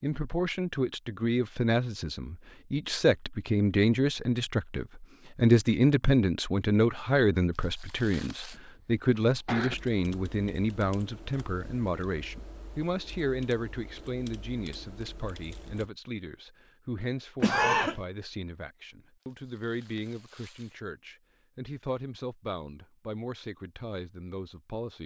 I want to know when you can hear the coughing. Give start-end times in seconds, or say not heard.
8.5-9.8, 17.4-17.9.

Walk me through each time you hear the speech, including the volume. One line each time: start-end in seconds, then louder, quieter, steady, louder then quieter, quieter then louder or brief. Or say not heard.
0.0-25.0 quieter.